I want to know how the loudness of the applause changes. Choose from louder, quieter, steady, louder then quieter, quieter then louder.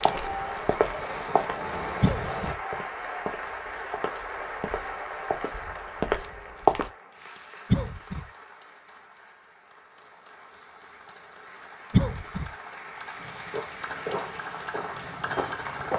quieter then louder.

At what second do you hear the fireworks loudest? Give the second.
2 s.